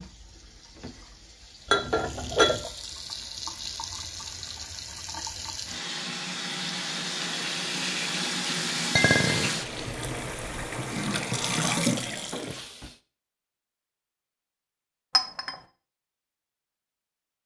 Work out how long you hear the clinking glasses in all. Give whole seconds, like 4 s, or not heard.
2 s.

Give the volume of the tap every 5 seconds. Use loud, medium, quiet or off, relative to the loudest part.
medium, loud, loud, off.